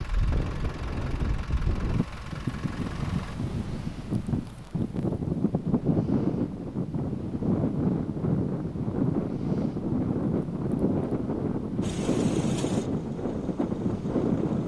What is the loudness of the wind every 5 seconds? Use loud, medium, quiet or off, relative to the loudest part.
medium, loud, loud.